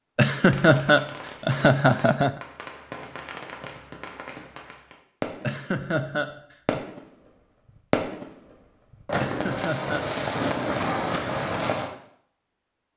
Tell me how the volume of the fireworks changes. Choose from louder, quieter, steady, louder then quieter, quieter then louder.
louder.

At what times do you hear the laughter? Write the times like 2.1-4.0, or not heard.
0.1-2.4, 5.4-6.8, 9.2-10.1.